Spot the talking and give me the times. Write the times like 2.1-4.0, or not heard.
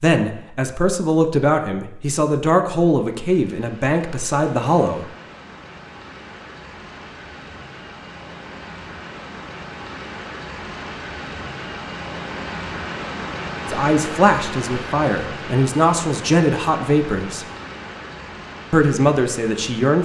0.0-5.0, 13.7-17.4, 18.7-19.9.